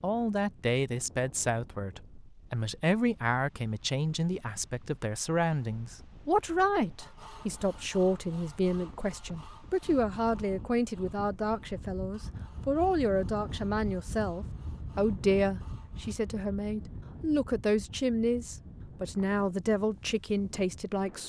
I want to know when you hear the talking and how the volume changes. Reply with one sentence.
The talking can be heard from 0.0 to 21.2 s, at a steady volume.